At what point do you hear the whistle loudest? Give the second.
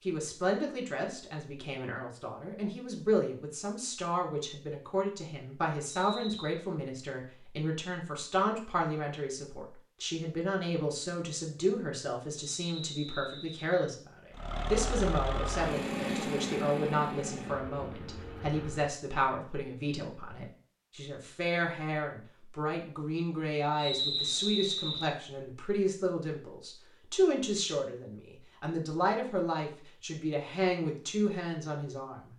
24 s.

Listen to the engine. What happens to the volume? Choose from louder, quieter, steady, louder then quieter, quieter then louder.
quieter.